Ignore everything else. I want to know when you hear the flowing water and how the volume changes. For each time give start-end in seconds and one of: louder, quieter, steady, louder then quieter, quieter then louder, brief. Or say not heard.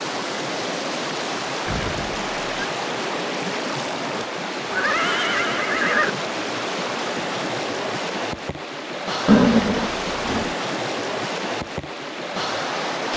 0.0-13.1 steady.